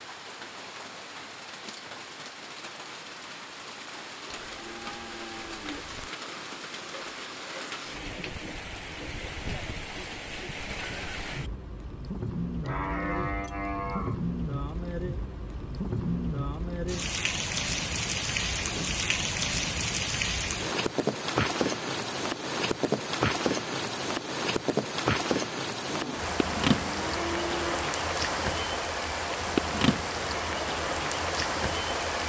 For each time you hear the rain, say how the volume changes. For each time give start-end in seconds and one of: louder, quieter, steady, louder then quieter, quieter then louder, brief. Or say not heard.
0.0-32.2 louder.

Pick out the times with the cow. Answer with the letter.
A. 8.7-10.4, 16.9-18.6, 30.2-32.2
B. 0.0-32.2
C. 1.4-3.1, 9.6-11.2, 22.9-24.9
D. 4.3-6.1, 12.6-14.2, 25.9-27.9
D.